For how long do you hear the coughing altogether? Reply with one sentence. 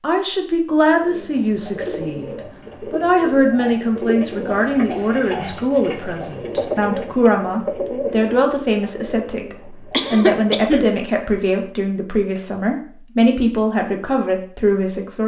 The coughing can be heard for 3 seconds in total.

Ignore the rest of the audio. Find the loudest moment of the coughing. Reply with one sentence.
The volume of the coughing peaks at 10 seconds.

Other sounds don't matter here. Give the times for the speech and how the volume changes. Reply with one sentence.
You can hear the speech from 0.0 to 15.2 s, at a steady volume.